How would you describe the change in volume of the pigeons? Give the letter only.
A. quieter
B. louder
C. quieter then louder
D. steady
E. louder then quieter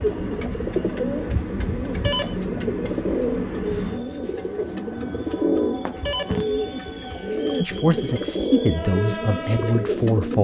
D.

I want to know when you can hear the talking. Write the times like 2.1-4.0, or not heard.
7.6-10.3.